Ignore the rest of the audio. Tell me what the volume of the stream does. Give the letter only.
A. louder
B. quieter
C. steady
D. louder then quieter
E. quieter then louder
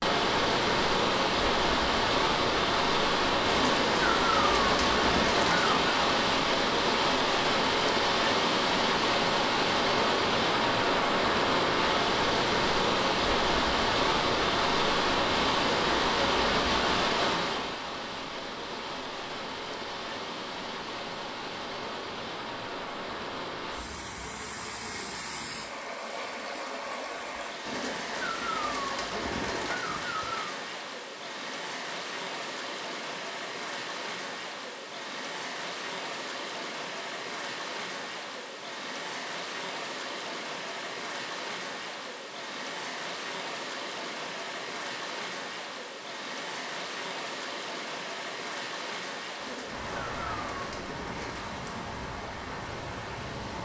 B.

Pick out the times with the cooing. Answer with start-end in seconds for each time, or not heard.
3.5-6.0, 27.6-30.6, 49.4-51.5.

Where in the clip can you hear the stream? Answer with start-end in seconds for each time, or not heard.
0.0-53.6.